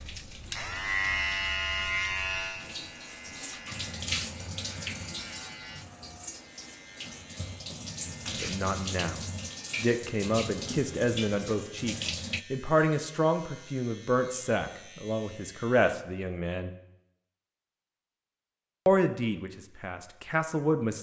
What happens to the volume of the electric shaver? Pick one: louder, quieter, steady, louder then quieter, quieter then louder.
quieter.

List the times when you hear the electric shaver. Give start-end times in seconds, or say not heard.
0.0-15.9.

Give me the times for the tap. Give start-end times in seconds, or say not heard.
0.0-12.4.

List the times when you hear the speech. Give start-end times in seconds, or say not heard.
8.4-16.7, 18.9-20.9.